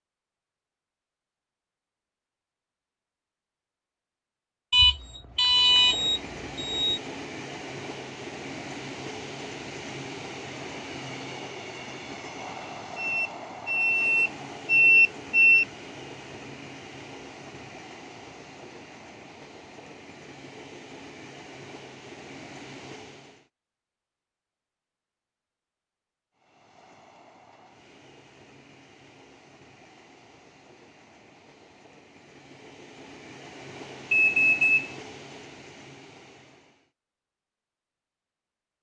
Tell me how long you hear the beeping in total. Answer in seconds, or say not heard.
6 s.